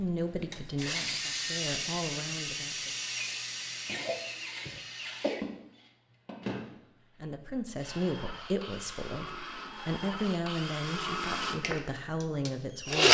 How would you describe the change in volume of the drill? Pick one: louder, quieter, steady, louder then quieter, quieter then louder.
quieter then louder.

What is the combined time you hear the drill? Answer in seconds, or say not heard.
13 s.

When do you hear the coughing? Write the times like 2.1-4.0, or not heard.
3.9-5.5.